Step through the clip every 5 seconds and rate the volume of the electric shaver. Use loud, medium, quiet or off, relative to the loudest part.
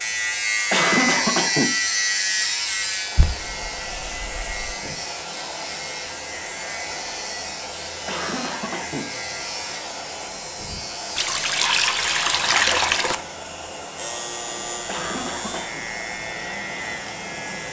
loud, medium, medium, medium.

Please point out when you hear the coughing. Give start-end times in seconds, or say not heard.
0.7-1.8, 8.1-9.1, 14.8-15.8.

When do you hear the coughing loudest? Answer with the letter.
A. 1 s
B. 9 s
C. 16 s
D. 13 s
A.